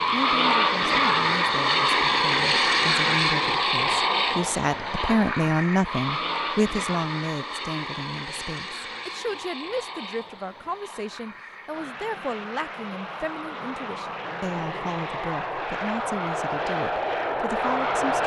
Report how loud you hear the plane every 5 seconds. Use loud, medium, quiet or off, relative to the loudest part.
loud, medium, quiet, medium.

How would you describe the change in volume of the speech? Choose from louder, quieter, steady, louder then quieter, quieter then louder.
louder then quieter.